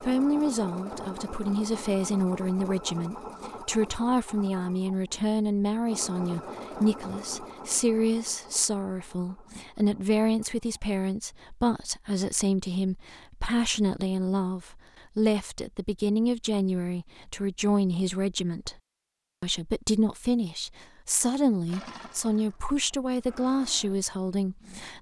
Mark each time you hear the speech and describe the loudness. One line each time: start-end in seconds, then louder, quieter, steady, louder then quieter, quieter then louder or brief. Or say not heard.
0.0-18.8 steady
19.4-24.9 steady.